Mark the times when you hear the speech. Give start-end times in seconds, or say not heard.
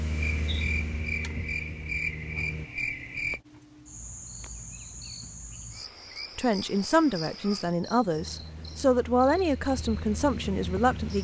6.3-11.1.